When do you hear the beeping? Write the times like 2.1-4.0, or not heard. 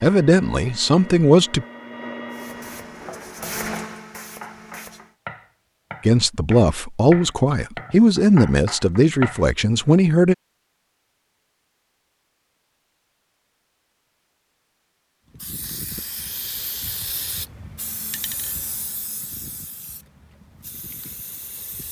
not heard.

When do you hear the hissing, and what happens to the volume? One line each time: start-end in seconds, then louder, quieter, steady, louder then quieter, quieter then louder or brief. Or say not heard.
2.3-5.2 brief
15.2-21.8 quieter.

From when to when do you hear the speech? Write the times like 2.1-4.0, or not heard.
0.0-1.6, 6.0-10.3.